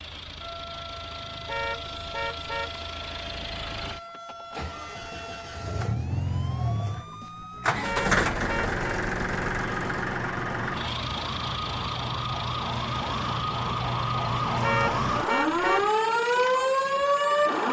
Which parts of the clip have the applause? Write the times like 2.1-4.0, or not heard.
not heard.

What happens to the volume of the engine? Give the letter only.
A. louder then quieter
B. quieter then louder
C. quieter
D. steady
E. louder
A.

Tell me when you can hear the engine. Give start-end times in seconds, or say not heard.
0.0-17.6.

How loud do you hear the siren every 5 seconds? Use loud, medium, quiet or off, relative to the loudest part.
quiet, quiet, medium, loud.